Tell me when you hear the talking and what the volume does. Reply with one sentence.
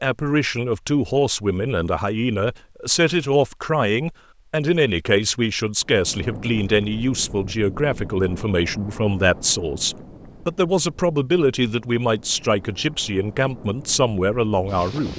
The talking can be heard from 0.0 to 15.1 s, at a steady volume.